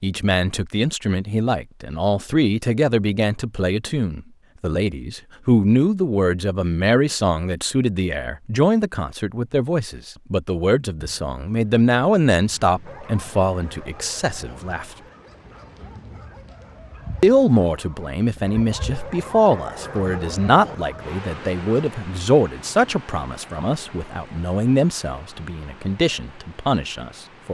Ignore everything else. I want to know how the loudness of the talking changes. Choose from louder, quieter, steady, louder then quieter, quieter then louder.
steady.